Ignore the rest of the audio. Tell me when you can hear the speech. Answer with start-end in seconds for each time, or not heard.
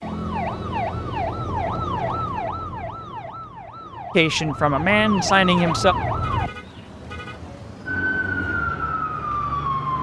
4.2-6.0.